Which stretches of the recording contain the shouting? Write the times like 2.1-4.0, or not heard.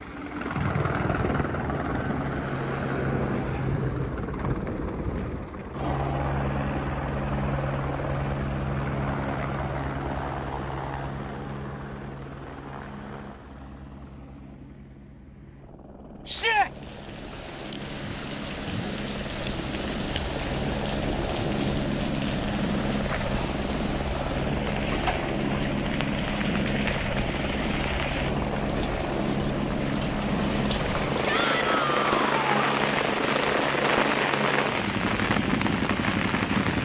16.2-16.7, 31.2-32.9.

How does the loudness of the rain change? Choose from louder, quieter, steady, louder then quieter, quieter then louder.
louder.